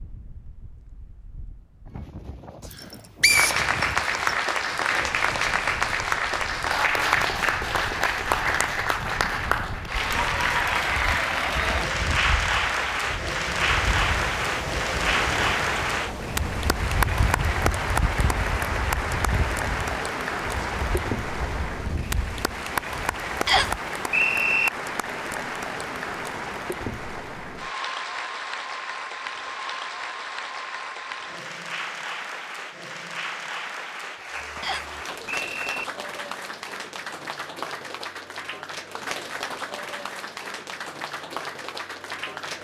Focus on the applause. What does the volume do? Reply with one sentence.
The volume of the applause goes down.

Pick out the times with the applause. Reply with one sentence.
You can hear the applause from 3.2 to 42.5 s.